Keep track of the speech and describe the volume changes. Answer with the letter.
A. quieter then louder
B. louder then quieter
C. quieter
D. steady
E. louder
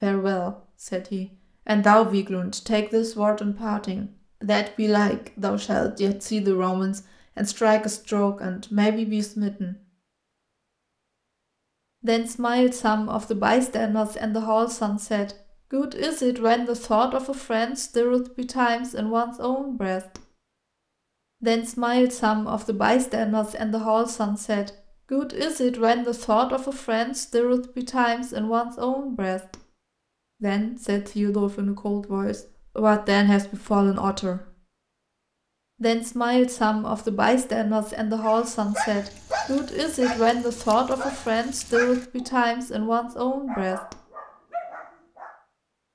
D.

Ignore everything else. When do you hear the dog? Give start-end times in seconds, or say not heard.
38.2-45.4.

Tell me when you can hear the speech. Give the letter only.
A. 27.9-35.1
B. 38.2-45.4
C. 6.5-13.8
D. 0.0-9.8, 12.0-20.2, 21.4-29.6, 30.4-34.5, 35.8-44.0
D.